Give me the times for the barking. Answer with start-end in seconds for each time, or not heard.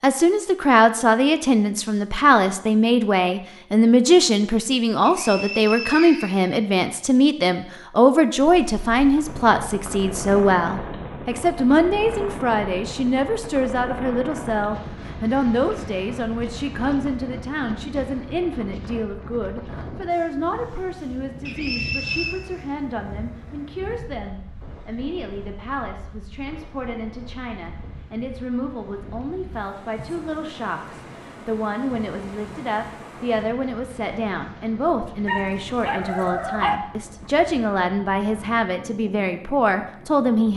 35.2-36.8.